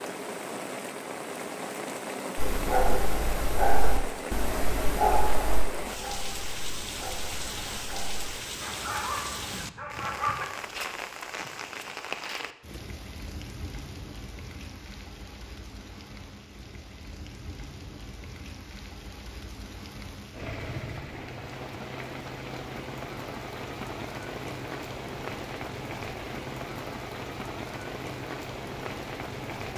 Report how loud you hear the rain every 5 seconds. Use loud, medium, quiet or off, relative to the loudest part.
loud, loud, loud, medium, loud, loud.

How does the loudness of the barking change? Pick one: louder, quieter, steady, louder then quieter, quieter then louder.
quieter then louder.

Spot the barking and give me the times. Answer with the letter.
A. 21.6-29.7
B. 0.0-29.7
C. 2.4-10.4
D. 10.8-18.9
C.